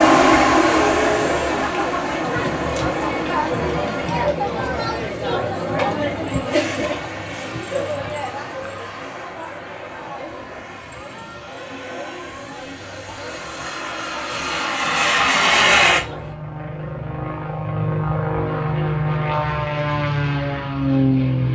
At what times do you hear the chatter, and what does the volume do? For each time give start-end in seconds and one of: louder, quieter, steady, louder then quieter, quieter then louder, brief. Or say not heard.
0.1-16.4 quieter.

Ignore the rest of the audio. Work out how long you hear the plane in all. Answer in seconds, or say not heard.
19 s.